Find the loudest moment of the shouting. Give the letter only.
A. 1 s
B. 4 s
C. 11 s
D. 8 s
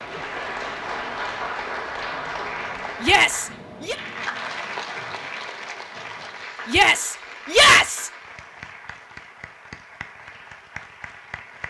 D.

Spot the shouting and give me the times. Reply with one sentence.
The shouting can be heard from 3.0 to 4.0 s and from 6.7 to 8.1 s.